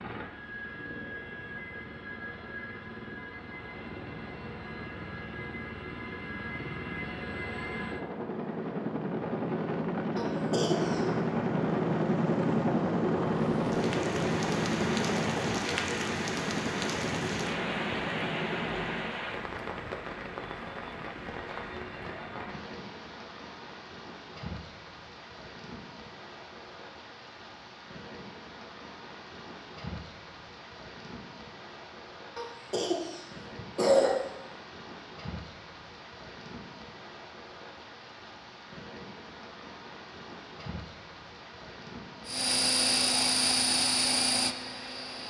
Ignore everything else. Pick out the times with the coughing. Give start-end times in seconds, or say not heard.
10.2-11.0, 32.4-34.1.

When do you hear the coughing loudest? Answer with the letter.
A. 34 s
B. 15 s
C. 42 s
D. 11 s
A.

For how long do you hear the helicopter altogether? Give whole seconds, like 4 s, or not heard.
22 s.